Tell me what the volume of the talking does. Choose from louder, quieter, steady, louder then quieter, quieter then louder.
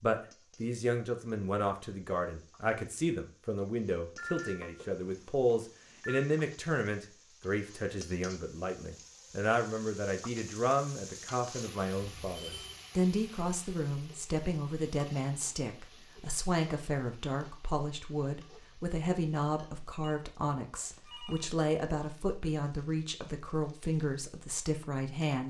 steady.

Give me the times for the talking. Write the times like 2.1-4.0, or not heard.
0.0-25.4.